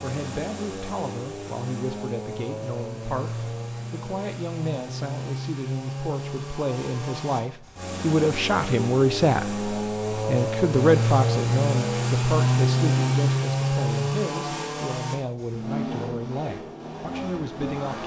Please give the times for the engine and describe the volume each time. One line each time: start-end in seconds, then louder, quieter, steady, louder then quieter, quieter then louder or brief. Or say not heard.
0.0-18.0 louder then quieter.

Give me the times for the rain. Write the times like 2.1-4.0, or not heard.
not heard.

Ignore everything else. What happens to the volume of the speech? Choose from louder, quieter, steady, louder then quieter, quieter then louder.
louder then quieter.